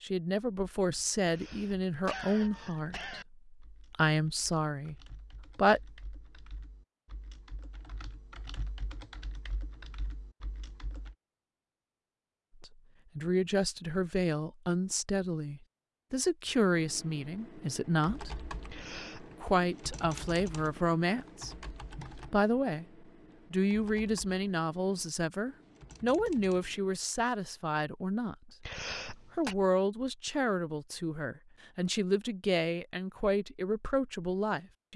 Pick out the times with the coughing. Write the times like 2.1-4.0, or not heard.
1.2-3.2, 18.7-19.4, 28.6-29.6.